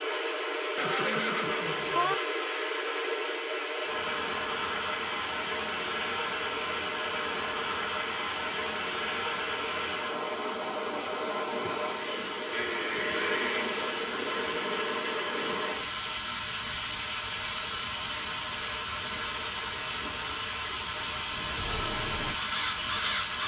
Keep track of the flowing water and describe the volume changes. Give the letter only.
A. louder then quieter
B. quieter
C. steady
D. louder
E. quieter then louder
C.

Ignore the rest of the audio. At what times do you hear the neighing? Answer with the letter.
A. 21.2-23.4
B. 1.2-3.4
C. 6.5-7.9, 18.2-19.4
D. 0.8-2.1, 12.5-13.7
D.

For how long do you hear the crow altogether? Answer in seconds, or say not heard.
2 s.